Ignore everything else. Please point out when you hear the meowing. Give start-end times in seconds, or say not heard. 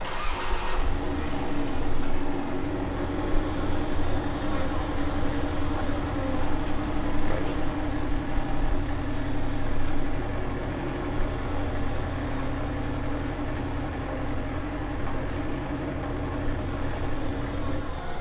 not heard.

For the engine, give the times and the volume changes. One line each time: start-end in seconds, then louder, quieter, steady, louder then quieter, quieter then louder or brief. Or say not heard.
0.0-18.1 steady.